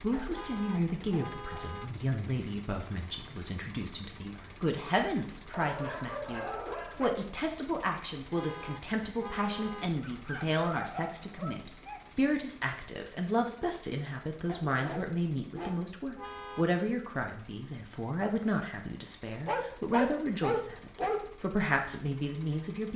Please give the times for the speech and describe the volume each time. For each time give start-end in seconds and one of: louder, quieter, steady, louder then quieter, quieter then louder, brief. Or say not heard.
0.0-22.9 steady.